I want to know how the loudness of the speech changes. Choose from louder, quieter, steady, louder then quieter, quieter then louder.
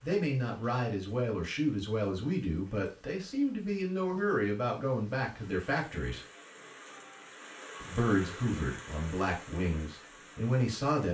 steady.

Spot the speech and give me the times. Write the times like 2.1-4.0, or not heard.
0.0-6.2, 7.8-11.0.